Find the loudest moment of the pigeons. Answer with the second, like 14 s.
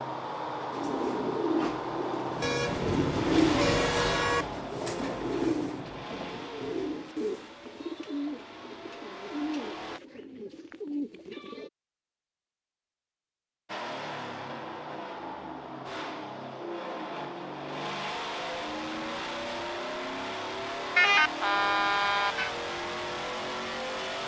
3 s.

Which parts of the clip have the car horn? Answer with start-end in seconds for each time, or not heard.
2.4-4.5, 20.9-22.5.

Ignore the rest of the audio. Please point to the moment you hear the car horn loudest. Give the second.
21 s.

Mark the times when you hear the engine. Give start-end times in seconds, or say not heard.
0.0-10.0, 13.7-24.2.